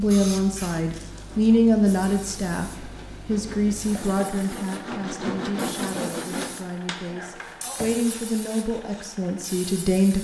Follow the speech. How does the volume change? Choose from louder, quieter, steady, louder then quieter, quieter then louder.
quieter then louder.